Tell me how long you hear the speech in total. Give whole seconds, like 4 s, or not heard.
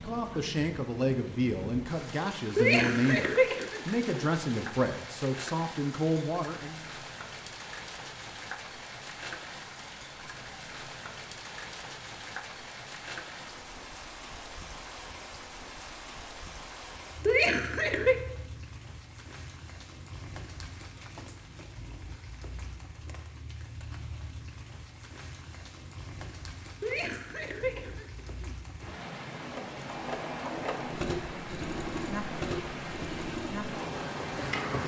7 s.